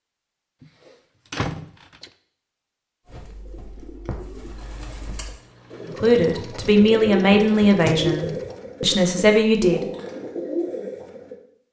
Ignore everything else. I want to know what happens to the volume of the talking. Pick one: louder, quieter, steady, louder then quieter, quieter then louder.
quieter then louder.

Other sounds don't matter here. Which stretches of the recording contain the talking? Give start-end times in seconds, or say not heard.
5.8-9.8.